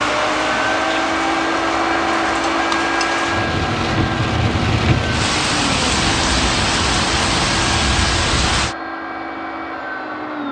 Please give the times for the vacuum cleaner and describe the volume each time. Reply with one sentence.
You can hear the vacuum cleaner from 0.0 to 10.4 s, getting quieter.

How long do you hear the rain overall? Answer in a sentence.
You can hear the rain for 9 seconds altogether.